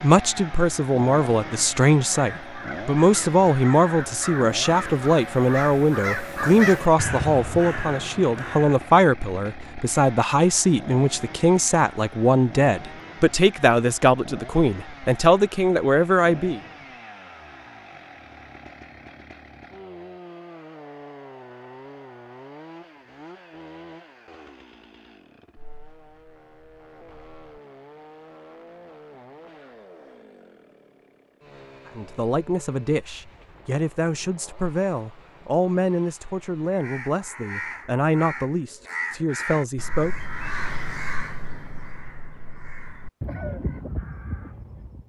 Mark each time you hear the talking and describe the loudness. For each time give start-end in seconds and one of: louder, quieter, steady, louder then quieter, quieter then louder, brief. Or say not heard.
0.0-16.6 steady
31.9-40.1 steady.